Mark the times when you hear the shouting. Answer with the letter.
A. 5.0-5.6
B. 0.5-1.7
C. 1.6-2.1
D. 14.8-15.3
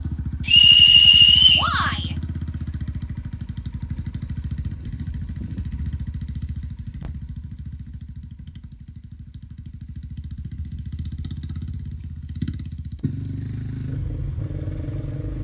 C.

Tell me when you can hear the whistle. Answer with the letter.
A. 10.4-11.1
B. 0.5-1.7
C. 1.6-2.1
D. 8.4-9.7
B.